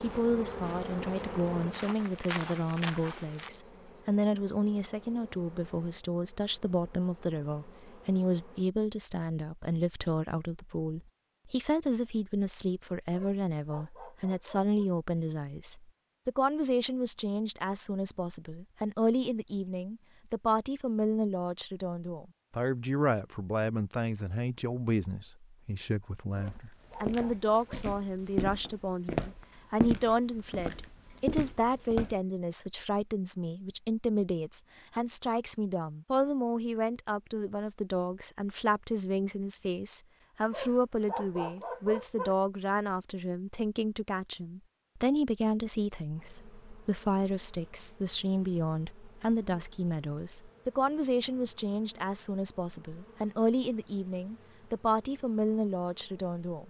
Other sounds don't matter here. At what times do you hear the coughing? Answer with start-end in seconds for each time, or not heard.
not heard.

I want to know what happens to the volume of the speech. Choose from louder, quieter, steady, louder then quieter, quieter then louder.
steady.